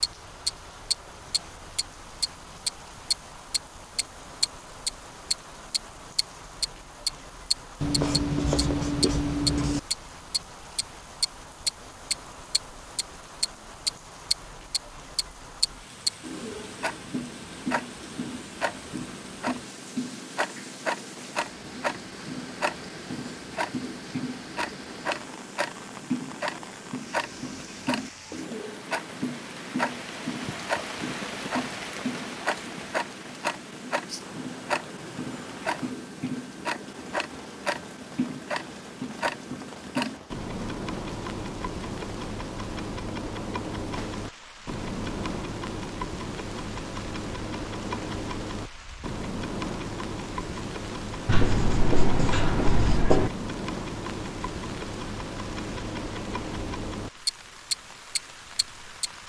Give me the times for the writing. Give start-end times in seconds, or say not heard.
7.8-9.8, 51.2-53.3.